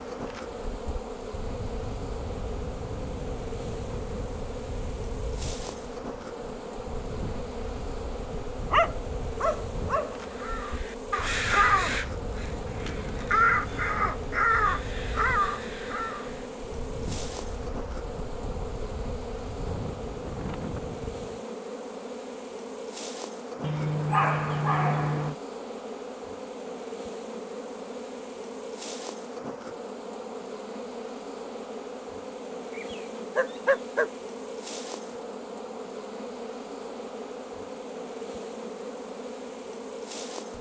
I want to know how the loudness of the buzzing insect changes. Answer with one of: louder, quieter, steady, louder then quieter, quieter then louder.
steady.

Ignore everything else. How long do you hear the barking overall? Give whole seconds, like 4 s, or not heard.
5 s.